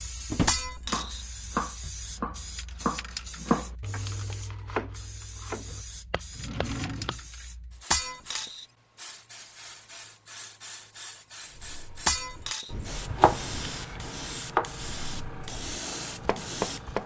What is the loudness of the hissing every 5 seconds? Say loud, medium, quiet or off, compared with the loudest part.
medium, medium, loud, loud.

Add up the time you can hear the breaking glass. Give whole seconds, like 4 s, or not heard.
2 s.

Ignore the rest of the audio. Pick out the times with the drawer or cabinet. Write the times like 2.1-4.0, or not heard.
0.3-0.8, 6.3-7.2, 13.1-14.1.